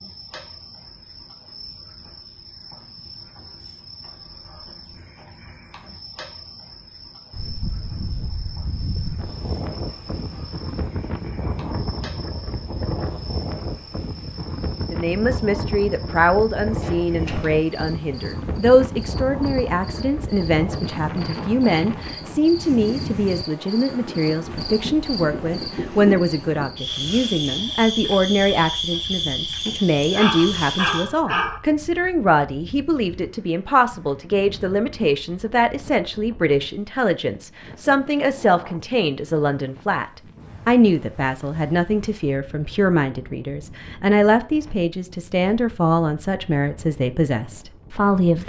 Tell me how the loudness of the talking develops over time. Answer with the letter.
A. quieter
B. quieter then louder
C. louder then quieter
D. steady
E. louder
D.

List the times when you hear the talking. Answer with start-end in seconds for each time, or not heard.
14.9-48.4.